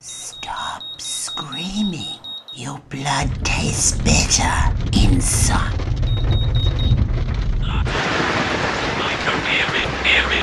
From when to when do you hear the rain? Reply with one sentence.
You can hear the rain from 3.2 to 10.3 s.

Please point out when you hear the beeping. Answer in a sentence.
The beeping can be heard from 0.1 to 2.6 s and from 6.0 to 6.8 s.